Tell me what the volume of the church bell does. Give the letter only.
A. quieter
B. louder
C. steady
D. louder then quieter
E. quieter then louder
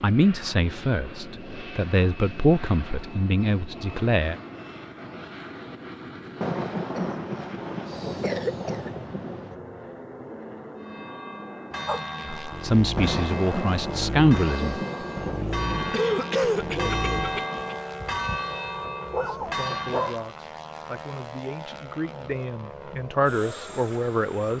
B.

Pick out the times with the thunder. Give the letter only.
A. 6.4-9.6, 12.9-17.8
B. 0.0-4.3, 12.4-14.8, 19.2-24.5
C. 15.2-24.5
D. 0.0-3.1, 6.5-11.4
A.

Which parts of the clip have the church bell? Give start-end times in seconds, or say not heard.
10.8-20.2.